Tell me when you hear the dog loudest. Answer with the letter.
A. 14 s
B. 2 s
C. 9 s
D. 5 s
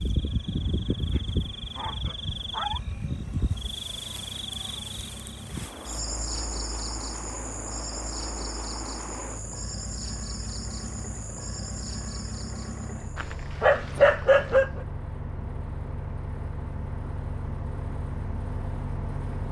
A.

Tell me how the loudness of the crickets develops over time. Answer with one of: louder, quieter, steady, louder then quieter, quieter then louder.
quieter.